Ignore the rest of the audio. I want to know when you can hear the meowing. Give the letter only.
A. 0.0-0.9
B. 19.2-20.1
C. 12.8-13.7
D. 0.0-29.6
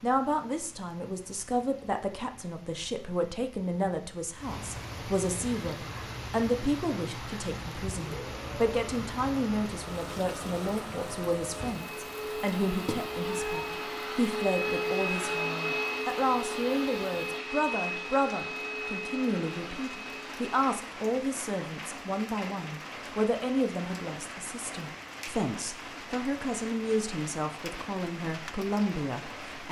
C.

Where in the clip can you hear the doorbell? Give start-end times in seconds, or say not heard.
not heard.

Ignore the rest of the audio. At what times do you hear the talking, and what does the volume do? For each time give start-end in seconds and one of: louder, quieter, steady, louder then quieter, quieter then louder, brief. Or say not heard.
0.0-29.6 steady.